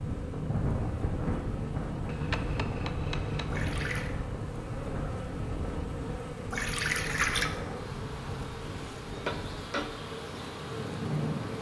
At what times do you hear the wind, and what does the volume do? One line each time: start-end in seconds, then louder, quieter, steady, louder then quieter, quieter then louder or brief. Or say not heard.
0.0-11.5 quieter.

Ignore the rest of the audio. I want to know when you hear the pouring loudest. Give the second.
7 s.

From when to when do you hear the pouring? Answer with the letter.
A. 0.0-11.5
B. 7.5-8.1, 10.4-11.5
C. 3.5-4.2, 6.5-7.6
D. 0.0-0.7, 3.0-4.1
C.